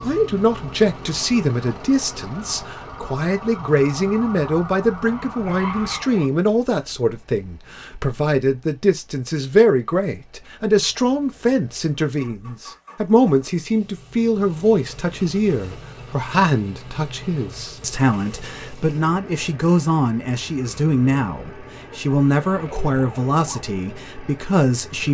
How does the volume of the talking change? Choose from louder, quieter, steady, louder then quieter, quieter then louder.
steady.